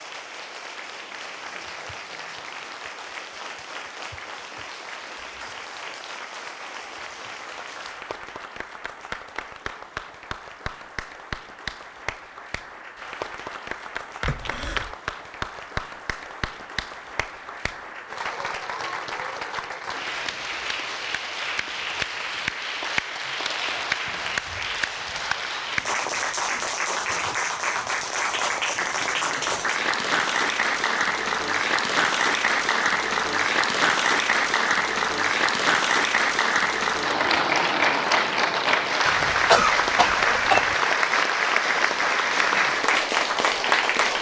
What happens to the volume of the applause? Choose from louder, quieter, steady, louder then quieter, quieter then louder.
louder.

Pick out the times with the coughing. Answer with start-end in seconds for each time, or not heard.
14.2-14.9, 39.0-40.8.